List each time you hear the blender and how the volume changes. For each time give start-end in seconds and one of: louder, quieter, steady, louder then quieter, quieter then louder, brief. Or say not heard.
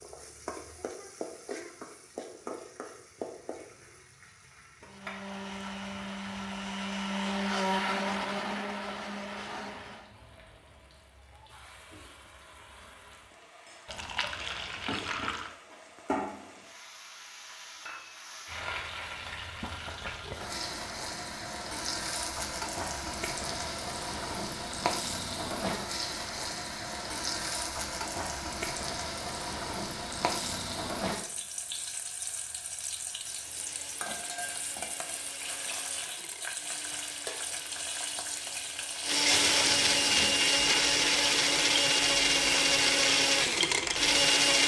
4.8-10.2 louder then quieter
33.2-44.6 louder.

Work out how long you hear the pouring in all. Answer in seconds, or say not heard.
3 s.